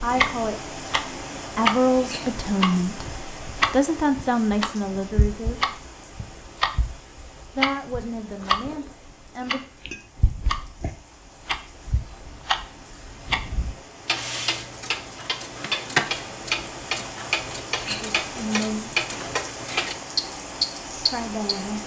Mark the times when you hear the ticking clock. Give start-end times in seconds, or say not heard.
0.0-21.6.